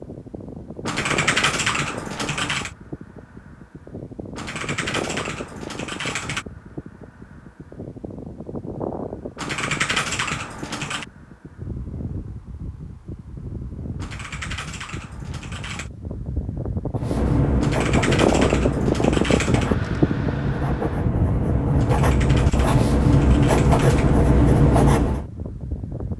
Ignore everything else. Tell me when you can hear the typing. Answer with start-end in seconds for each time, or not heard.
0.8-2.7, 4.3-6.5, 9.3-11.1, 13.9-15.9, 17.6-19.8, 21.8-24.1.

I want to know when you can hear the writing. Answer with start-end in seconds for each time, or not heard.
16.9-25.2.